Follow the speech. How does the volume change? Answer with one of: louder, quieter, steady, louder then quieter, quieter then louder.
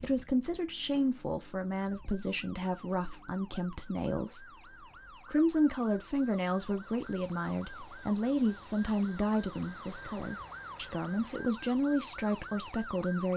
steady.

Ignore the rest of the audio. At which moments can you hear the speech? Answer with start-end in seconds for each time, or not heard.
0.0-4.5, 5.2-13.3.